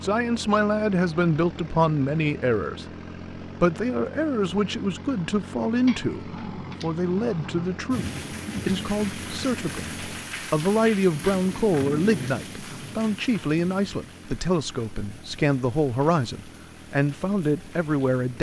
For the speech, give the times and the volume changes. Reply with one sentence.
You can hear the speech from 0.0 to 18.3 s, at a steady volume.